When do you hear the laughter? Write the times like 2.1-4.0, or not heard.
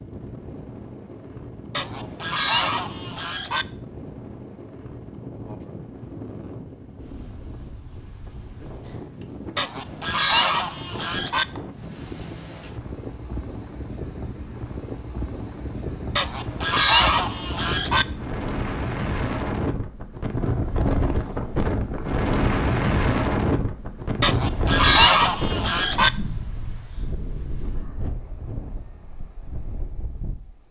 not heard.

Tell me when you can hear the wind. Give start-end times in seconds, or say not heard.
0.0-30.6.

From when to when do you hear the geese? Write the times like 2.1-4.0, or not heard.
1.7-3.6, 9.6-11.4, 16.1-18.1, 24.2-26.1.